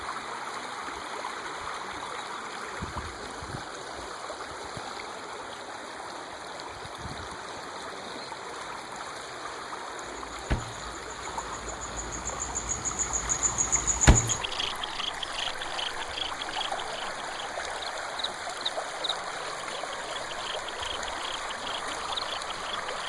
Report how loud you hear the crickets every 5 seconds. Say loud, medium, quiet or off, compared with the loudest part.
off, off, loud, medium, medium.